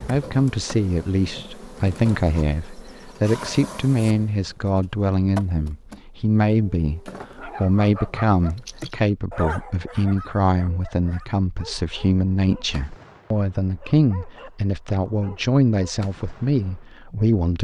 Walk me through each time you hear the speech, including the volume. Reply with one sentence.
The speech can be heard from 0.1 to 17.5 s, at a steady volume.